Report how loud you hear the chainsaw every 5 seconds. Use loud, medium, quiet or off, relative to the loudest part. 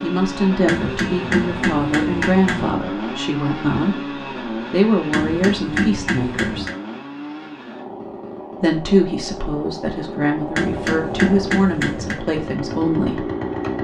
loud, medium, loud.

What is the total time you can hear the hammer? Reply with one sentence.
The hammer can be heard for 5 seconds in total.